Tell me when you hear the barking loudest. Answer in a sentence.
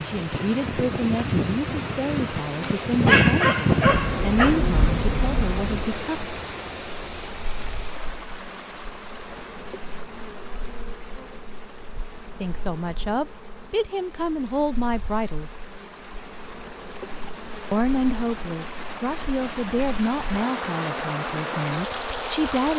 The volume of the barking peaks at 3 seconds.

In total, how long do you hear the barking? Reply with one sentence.
The barking can be heard for 2 seconds in total.